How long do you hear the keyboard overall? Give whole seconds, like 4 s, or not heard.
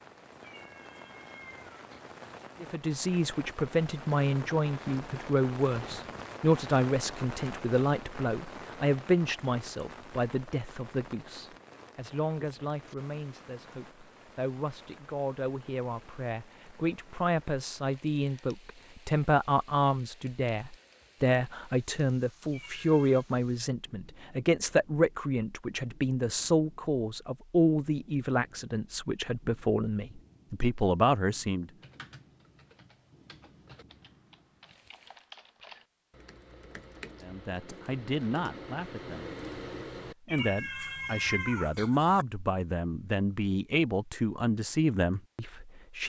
9 s.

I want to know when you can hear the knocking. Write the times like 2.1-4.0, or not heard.
not heard.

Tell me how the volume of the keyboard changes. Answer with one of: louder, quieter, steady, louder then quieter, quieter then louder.
louder.